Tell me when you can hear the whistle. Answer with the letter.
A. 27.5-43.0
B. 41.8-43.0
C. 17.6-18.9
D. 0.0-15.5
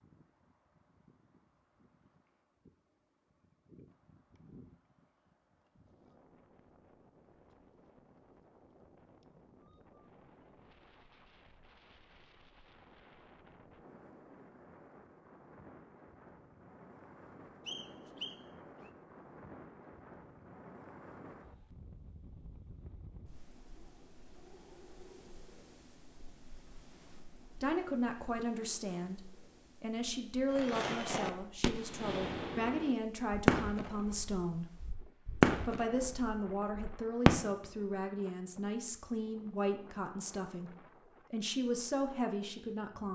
C.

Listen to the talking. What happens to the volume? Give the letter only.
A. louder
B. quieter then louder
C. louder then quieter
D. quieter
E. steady
E.